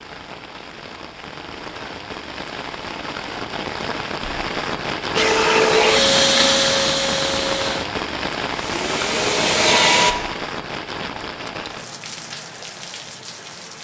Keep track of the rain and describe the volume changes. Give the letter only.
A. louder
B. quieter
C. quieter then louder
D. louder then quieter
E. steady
D.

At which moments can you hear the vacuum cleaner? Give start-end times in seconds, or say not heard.
5.2-10.2.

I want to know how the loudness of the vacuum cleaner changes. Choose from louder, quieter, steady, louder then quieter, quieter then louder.
quieter then louder.